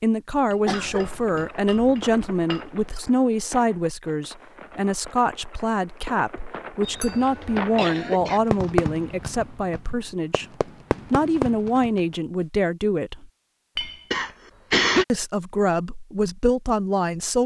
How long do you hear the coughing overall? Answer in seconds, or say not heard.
3 s.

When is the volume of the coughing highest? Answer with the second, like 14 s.
15 s.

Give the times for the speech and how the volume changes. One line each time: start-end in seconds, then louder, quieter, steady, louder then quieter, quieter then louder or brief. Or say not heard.
0.0-13.3 steady
15.1-17.4 brief.